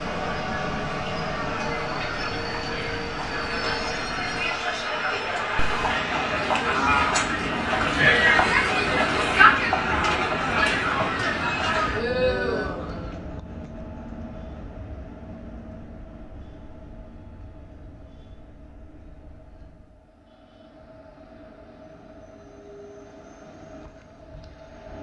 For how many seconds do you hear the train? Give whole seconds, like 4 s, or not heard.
25 s.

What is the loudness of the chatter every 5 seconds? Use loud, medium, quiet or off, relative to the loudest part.
medium, loud, loud, off, off.